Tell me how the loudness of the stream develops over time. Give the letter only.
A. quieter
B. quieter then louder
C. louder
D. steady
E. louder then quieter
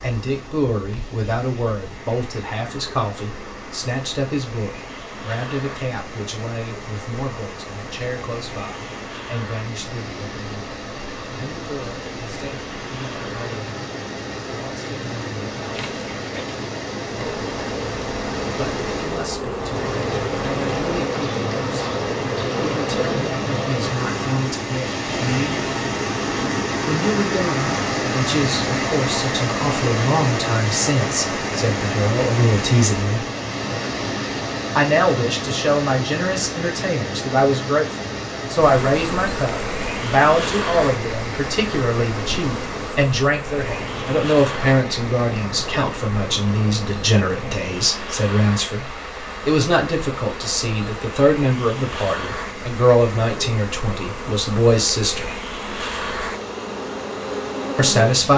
E.